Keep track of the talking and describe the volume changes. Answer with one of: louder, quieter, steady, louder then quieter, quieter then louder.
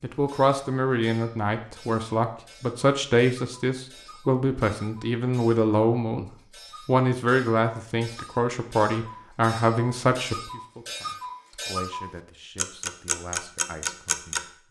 quieter.